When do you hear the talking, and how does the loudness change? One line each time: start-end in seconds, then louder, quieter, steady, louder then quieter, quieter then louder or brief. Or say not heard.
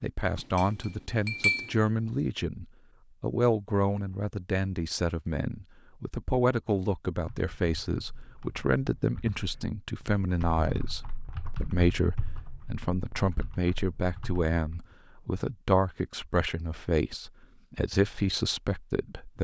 0.0-19.3 steady.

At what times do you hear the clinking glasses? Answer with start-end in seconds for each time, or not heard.
0.3-1.8.